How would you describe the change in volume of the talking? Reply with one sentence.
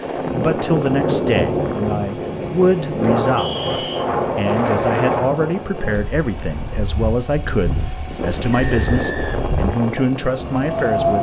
The volume of the talking stays about the same.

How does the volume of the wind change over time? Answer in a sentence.
The loudness of the wind goes down.